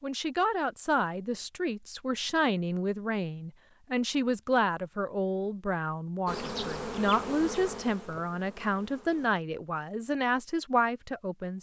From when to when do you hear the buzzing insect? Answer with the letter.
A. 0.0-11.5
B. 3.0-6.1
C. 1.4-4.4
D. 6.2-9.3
D.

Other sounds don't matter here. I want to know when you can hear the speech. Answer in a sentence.
The speech can be heard from 0.0 to 11.5 s.